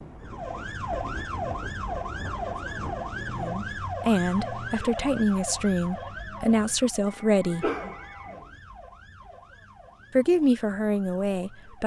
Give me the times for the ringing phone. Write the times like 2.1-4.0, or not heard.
7.0-8.4.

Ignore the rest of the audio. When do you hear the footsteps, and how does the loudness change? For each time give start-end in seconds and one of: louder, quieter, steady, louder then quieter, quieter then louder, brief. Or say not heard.
not heard.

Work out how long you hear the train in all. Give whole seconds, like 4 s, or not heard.
4 s.